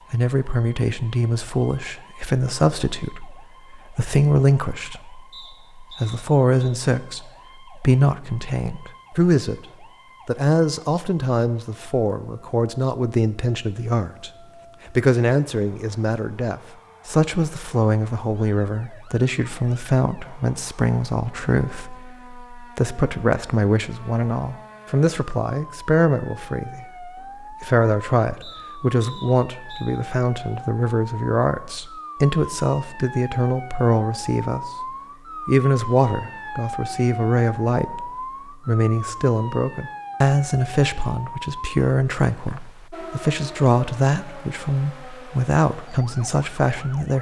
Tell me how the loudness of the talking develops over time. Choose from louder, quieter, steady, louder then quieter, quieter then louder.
steady.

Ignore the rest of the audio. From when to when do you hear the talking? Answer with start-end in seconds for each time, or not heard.
0.1-14.3, 14.9-47.1.